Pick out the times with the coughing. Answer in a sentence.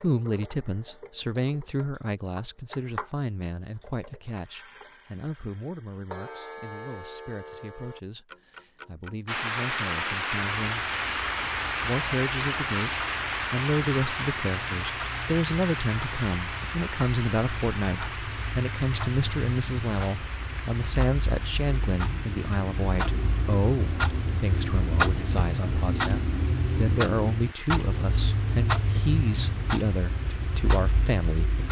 The coughing can't be heard in this clip.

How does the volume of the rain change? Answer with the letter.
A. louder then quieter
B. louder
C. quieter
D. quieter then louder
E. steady
C.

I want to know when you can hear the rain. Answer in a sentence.
You can hear the rain from 9.2 to 31.6 s.